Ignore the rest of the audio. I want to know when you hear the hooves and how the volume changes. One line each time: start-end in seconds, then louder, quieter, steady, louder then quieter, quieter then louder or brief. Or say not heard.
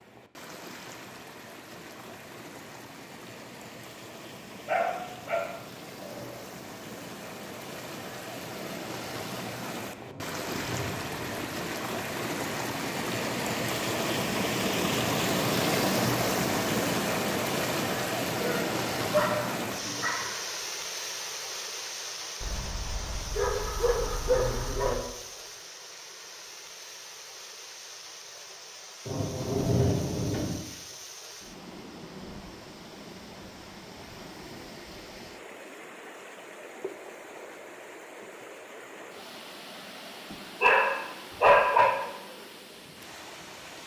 not heard.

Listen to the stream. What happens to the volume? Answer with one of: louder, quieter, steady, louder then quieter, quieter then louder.
louder then quieter.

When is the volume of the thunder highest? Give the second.
30 s.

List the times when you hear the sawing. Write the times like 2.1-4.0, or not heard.
not heard.